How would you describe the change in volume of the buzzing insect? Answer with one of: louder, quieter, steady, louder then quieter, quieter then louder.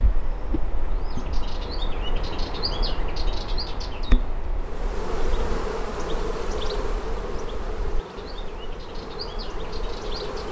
quieter.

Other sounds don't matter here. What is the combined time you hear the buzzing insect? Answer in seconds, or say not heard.
6 s.